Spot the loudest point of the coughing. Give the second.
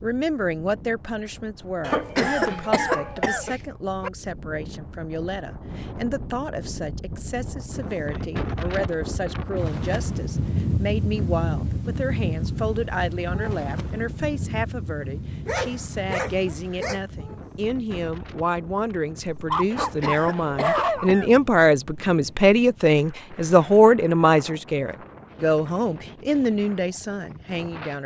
2 s.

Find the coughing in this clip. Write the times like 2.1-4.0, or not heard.
1.8-3.5, 19.7-21.4.